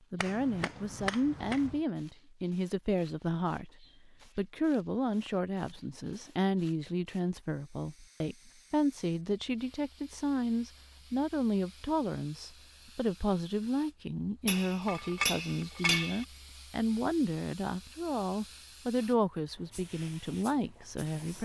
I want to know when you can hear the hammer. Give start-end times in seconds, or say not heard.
0.1-1.8, 14.4-16.2.